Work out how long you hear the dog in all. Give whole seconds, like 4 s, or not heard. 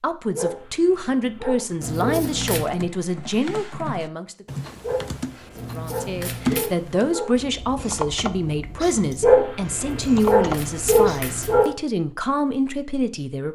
7 s.